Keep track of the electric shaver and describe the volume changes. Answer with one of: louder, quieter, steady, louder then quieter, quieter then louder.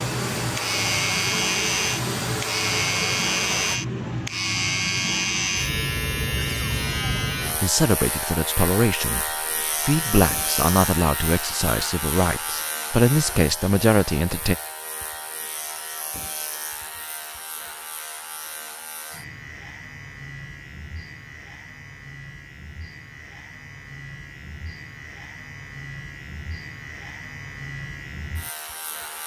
quieter.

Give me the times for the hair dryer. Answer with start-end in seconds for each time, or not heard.
0.0-3.8.